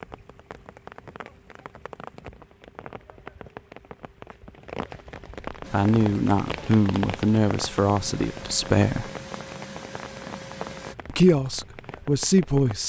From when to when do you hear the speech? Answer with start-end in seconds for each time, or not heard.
5.7-9.1, 11.1-12.8.